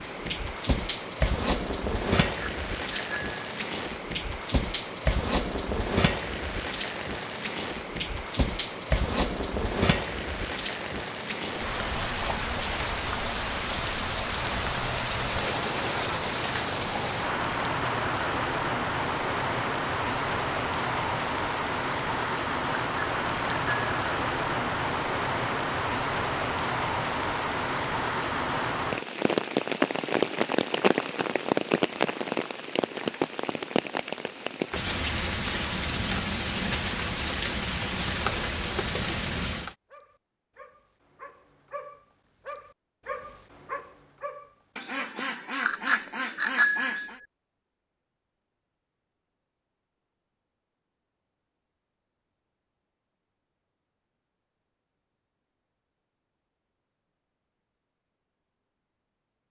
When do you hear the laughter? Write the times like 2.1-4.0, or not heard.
not heard.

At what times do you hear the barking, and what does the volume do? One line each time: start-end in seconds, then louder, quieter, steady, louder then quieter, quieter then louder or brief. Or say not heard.
39.9-45.2 louder then quieter.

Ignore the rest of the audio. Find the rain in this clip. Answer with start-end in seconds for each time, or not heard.
0.0-39.8.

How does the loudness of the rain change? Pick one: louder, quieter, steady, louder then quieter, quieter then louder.
steady.